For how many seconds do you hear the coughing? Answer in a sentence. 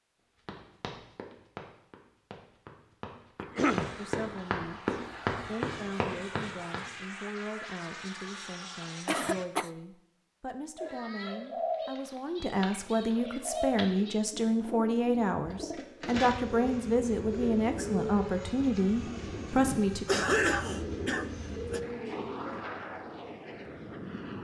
You can hear the coughing for 3 seconds altogether.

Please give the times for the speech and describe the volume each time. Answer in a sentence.
You can hear the speech from 4.0 to 20.1 s, getting louder.